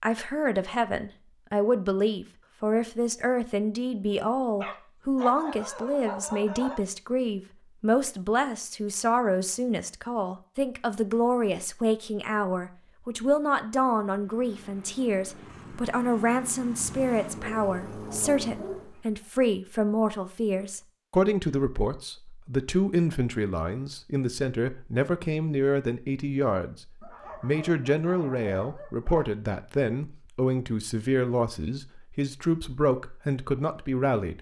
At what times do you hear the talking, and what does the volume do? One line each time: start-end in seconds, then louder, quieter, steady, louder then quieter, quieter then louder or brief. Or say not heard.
0.0-34.3 steady.